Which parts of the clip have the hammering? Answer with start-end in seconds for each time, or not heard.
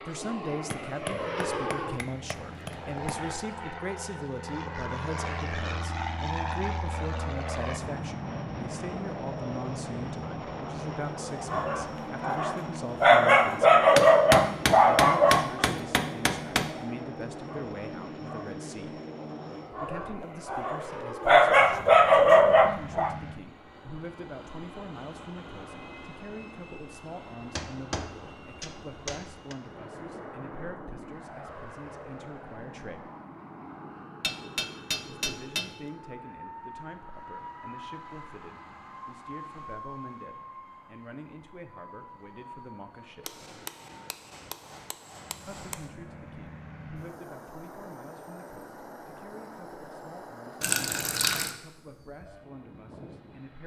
0.7-3.3, 13.9-16.8, 27.4-29.6, 34.2-35.8, 43.2-45.9.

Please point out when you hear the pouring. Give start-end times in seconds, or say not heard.
50.6-51.5.